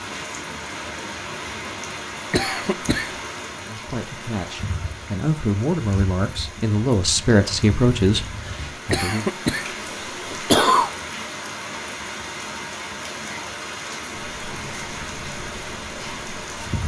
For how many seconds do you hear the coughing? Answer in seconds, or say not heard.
3 s.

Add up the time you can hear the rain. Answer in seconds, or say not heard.
17 s.